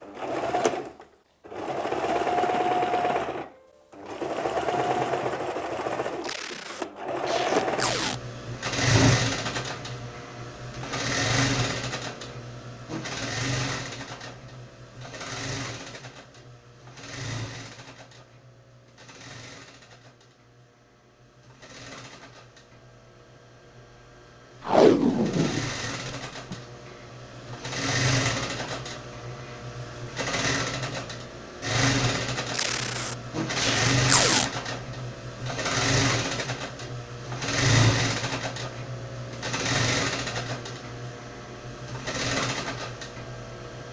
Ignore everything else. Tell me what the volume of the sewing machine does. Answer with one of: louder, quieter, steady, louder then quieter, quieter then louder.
quieter then louder.